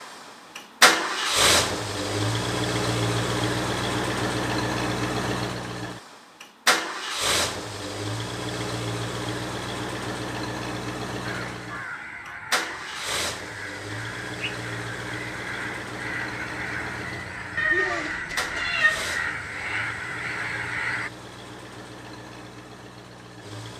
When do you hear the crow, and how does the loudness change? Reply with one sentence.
The crow can be heard from 11.2 to 21.1 s, getting louder.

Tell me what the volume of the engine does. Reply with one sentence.
The loudness of the engine goes down.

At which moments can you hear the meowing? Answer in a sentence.
You can hear the meowing from 17.6 to 19.1 s.